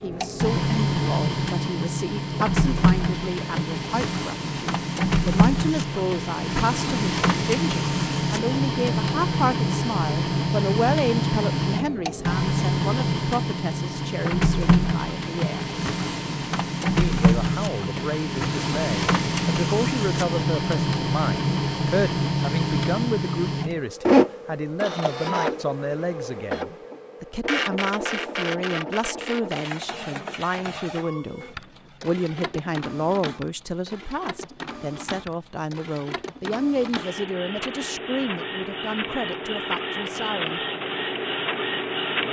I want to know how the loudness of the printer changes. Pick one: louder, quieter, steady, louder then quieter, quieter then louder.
quieter.